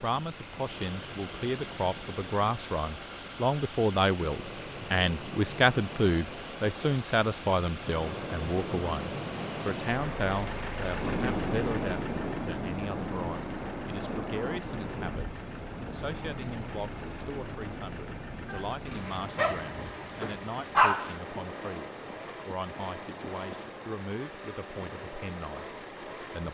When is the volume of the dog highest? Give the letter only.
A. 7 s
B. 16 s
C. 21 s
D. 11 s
C.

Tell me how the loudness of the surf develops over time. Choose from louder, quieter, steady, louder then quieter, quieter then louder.
louder then quieter.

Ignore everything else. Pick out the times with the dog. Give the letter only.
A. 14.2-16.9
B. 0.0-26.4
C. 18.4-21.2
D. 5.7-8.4
C.